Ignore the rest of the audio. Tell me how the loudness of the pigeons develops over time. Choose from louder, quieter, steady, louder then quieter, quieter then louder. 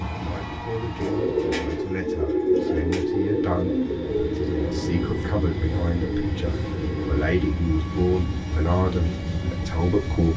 quieter.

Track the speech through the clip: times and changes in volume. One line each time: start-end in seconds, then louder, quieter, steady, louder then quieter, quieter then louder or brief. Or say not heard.
0.1-10.3 louder.